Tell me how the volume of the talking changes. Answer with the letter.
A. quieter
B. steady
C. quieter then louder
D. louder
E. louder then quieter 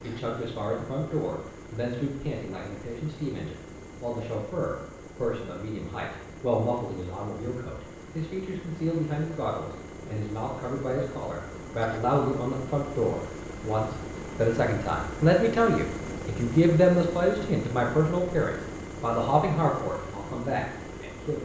D.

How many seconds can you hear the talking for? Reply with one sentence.
The talking can be heard for 21 seconds in total.